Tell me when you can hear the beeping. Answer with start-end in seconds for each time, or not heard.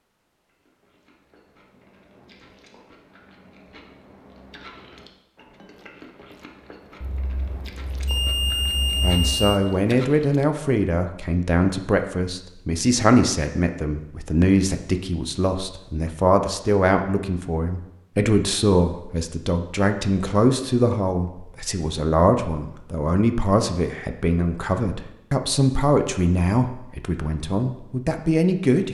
7.0-9.3.